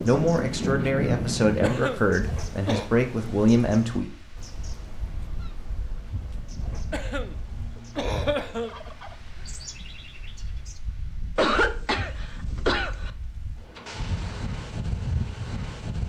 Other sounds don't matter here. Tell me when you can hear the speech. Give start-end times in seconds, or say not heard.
0.0-4.1.